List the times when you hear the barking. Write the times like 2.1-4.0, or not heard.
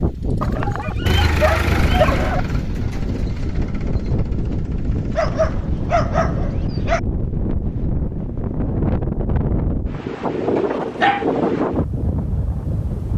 0.4-2.4, 5.2-7.0, 10.6-11.2.